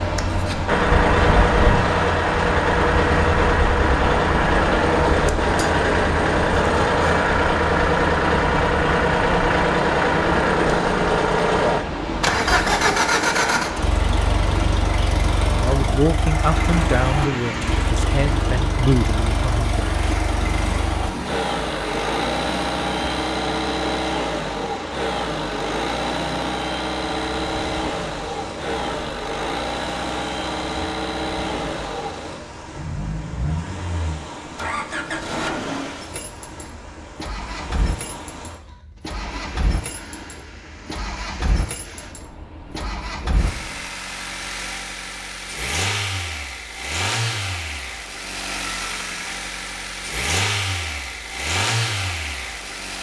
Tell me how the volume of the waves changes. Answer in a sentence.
The loudness of the waves goes down.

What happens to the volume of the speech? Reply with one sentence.
The volume of the speech goes down, then up.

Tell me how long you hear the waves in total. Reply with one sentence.
The waves can be heard for 44 seconds in total.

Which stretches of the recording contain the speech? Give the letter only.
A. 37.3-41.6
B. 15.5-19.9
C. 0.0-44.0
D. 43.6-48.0
B.